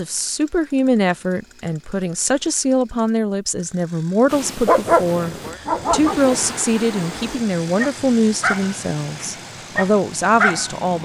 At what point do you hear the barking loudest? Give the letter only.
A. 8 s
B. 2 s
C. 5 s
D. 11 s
C.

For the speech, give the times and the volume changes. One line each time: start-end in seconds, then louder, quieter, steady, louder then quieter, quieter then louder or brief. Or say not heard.
0.0-11.0 steady.